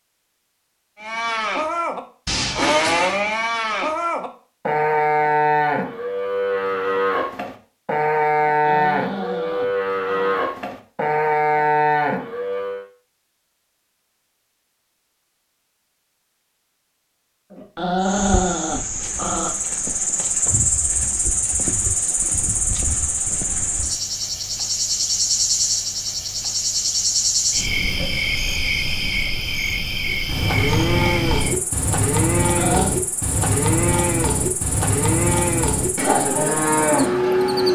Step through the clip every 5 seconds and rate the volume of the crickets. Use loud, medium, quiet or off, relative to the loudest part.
off, off, off, medium, loud, loud, medium, medium.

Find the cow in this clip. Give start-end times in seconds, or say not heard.
1.0-12.8, 30.1-37.7.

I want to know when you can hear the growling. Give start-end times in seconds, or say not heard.
8.4-10.4, 17.5-19.5, 32.4-32.9.